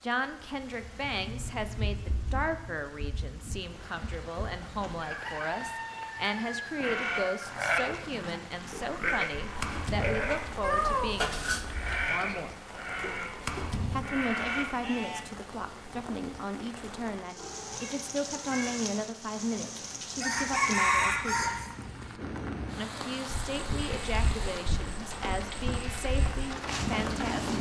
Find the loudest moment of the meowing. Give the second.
11 s.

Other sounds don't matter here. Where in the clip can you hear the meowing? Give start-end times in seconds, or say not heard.
10.6-12.2, 17.4-18.8.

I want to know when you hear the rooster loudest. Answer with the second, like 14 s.
21 s.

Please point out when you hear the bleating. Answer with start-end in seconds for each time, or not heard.
6.8-15.2, 23.5-27.5.